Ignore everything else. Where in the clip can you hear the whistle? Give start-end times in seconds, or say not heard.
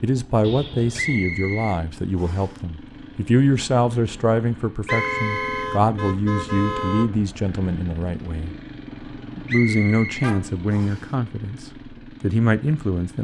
0.9-2.5, 4.8-5.7, 9.4-11.1.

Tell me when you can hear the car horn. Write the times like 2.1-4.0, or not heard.
0.4-1.4, 4.8-7.1, 8.9-10.6.